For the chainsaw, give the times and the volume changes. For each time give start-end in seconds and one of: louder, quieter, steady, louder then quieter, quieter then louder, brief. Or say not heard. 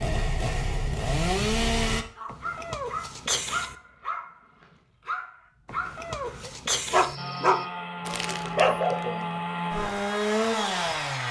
0.0-2.0 brief
7.2-11.2 louder.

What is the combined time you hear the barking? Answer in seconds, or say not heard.
7 s.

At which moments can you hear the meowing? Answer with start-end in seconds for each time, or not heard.
2.2-3.8, 5.7-7.2.